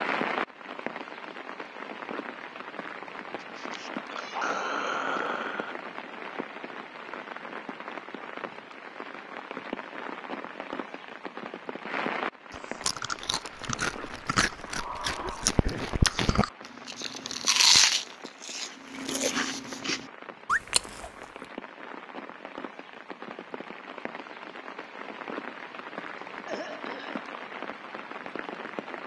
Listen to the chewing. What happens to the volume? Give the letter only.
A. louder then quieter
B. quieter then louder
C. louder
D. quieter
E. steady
A.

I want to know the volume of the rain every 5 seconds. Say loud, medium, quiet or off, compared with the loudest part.
loud, loud, loud, medium, medium, loud.